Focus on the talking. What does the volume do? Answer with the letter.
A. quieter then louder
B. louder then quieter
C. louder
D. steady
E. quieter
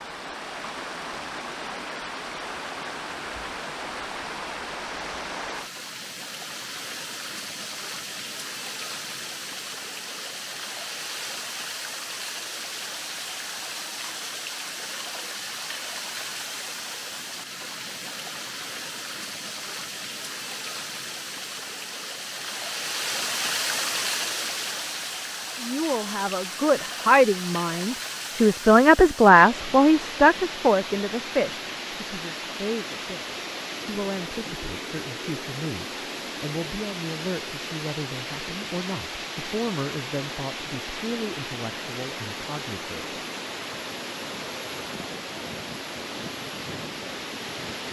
E.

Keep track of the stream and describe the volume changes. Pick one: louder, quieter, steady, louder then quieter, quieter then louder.
steady.